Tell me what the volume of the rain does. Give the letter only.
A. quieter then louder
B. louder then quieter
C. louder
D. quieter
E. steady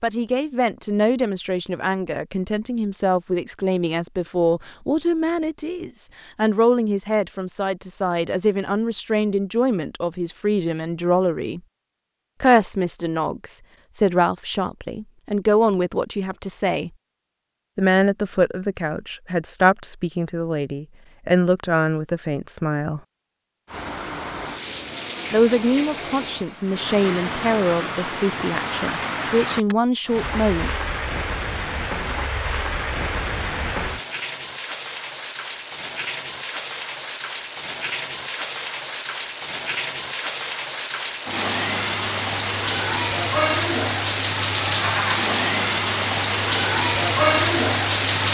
C.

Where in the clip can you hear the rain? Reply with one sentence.
You can hear the rain from 23.6 to 48.2 s.